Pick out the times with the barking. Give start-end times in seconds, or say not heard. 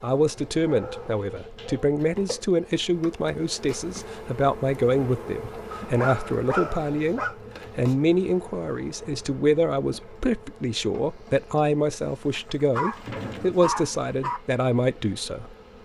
0.6-1.9, 5.7-7.3, 12.7-14.4.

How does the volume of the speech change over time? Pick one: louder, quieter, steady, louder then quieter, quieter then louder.
steady.